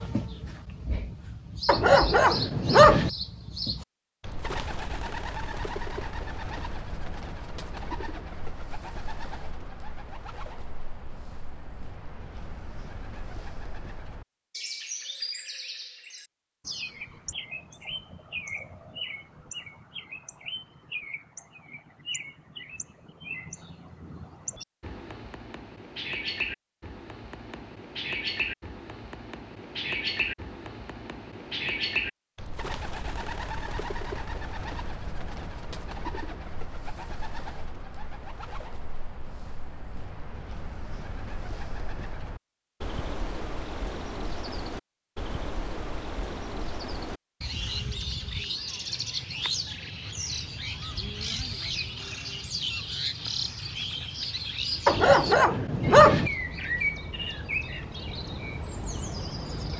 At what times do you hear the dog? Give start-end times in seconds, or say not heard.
1.6-3.1, 54.9-56.3.